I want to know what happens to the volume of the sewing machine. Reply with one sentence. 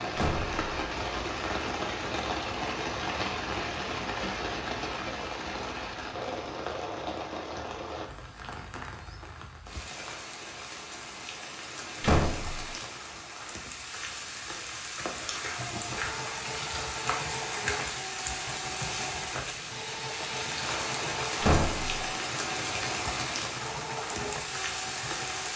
The volume of the sewing machine stays about the same.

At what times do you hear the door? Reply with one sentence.
You can hear the door from 0.1 to 0.6 s, from 12.0 to 12.8 s and from 21.4 to 22.1 s.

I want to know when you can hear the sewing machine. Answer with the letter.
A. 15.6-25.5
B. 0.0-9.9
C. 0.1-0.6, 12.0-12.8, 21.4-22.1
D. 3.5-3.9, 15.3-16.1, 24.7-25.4
A.